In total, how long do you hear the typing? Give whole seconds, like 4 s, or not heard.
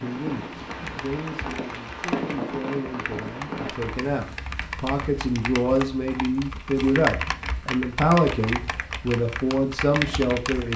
10 s.